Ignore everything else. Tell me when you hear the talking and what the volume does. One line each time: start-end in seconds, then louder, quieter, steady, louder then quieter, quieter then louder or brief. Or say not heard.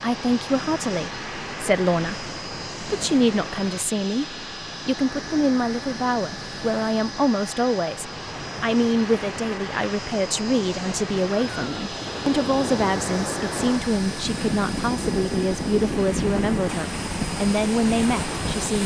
0.0-18.8 steady.